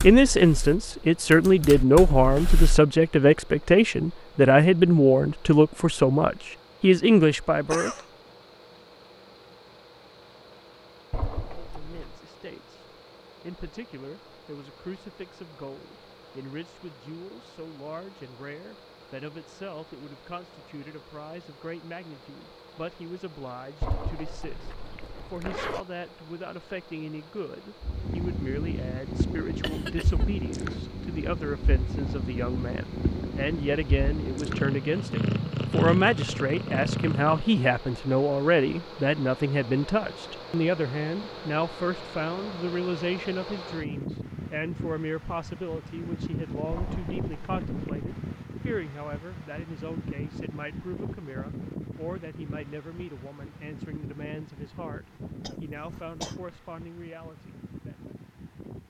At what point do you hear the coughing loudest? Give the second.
8 s.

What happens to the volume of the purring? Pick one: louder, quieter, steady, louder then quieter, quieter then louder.
louder.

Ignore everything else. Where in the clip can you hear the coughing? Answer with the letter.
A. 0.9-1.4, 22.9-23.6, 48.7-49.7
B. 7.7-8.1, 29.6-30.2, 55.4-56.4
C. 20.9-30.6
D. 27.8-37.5
B.